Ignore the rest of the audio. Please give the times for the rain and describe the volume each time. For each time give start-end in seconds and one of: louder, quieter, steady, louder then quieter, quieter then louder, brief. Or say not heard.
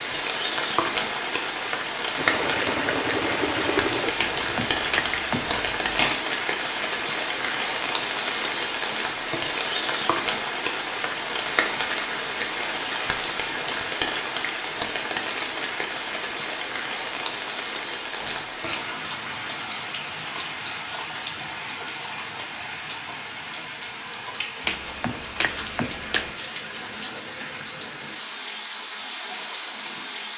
0.0-30.3 quieter.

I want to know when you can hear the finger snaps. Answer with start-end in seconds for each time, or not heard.
4.2-5.6, 24.6-26.4.